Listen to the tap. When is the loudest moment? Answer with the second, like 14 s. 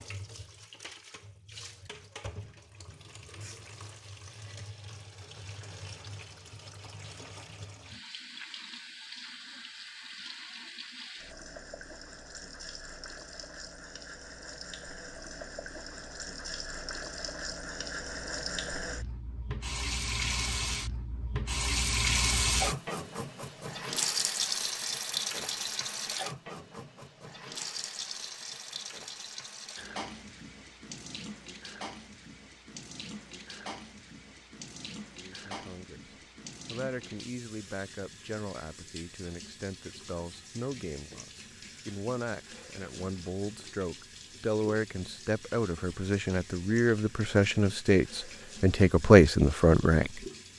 22 s.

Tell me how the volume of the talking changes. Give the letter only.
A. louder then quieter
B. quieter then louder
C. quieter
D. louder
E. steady
D.